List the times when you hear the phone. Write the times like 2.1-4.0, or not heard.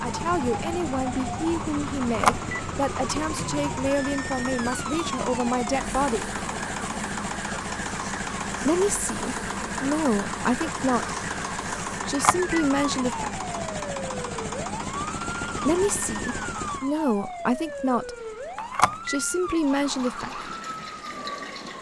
2.0-2.6, 12.1-12.6, 18.6-19.1.